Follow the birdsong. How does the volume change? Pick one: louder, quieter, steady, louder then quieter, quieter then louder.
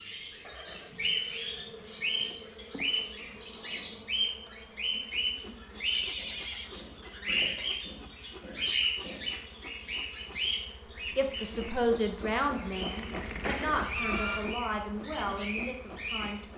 quieter.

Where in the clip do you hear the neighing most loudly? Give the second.
14 s.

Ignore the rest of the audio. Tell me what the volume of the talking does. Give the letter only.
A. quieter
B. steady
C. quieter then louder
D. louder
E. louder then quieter
A.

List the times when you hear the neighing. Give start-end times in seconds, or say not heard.
0.4-2.4, 5.8-6.7, 12.9-14.4.